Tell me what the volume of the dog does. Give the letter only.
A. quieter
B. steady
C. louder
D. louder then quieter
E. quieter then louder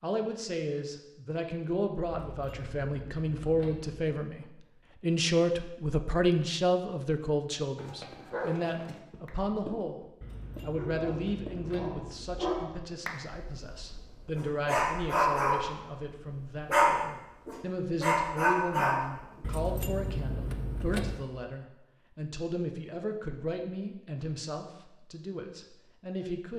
C.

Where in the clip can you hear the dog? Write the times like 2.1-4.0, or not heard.
7.8-19.2.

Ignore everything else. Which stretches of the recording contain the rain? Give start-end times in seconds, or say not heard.
not heard.